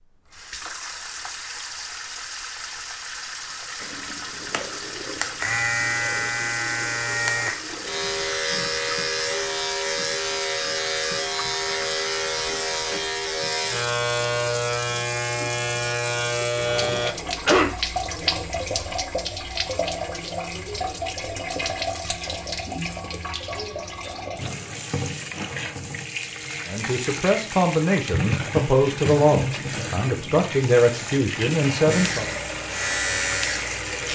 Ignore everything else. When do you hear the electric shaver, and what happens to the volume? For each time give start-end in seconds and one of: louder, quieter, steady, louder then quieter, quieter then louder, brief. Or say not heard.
3.8-17.1 steady
31.9-34.1 brief.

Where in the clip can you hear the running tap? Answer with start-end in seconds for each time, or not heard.
0.3-34.1.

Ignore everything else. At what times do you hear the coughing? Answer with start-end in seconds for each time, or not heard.
16.8-17.7.